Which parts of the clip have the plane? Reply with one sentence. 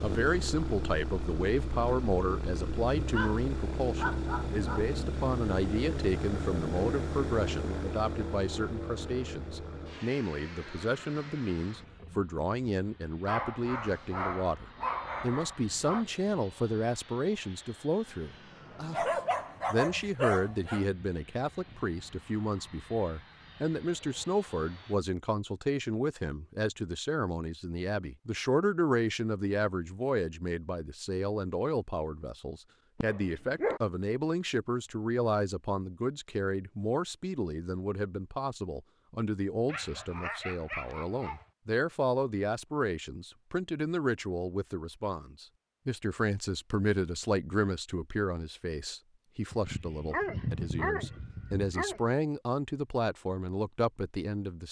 You can hear the plane from 0.0 to 24.9 s.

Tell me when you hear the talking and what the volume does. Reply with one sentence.
You can hear the talking from 0.0 to 19.1 s, at a steady volume; and from 19.7 to 54.6 s, at a steady volume.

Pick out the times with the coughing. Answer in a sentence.
The coughing can't be heard in this clip.